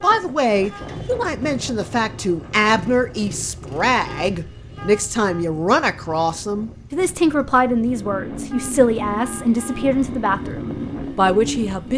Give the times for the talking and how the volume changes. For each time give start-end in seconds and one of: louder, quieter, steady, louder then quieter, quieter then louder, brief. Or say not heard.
0.0-11.9 steady.